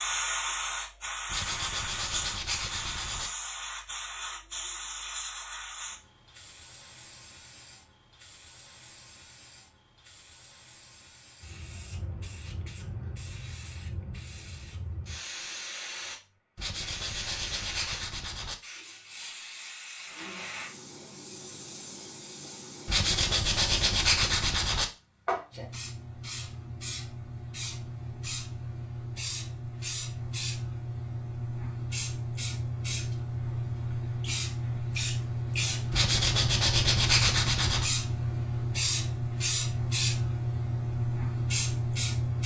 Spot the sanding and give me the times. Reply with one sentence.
The sanding can be heard from 1.2 to 3.3 s, from 16.6 to 18.6 s, from 22.9 to 24.9 s and from 35.9 to 37.9 s.